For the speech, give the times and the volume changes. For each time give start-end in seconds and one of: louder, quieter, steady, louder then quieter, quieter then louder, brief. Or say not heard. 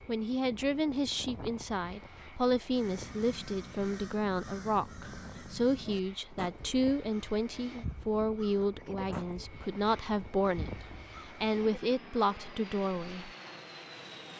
0.1-13.3 steady.